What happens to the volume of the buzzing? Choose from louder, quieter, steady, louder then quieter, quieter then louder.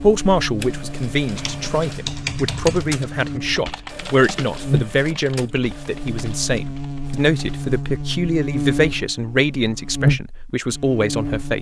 louder.